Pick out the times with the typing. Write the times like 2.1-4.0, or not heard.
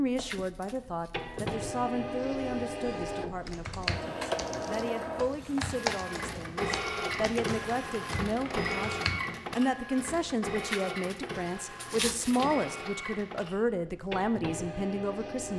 3.4-9.4.